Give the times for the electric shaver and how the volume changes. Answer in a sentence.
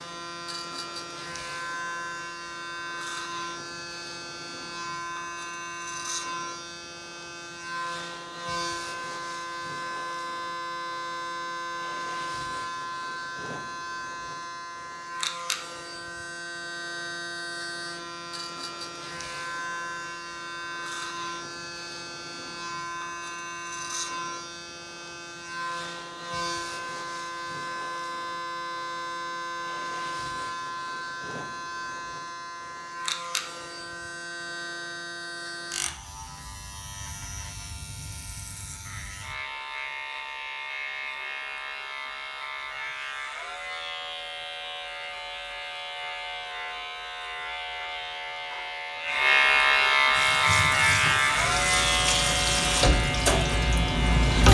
You can hear the electric shaver from 0.0 to 54.4 s, getting louder.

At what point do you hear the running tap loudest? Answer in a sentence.
The loudest moment of the running tap is at 54 seconds.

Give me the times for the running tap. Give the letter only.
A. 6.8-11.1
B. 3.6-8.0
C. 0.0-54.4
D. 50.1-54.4
D.